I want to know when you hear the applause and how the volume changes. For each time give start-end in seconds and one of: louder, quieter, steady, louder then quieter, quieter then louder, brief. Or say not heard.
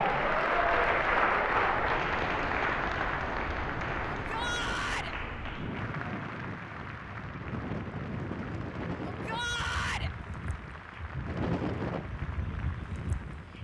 0.0-13.5 quieter.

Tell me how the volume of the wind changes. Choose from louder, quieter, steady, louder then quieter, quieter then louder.
louder.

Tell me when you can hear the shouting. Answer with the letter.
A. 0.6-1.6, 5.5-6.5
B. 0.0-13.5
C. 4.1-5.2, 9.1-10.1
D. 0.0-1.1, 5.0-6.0
C.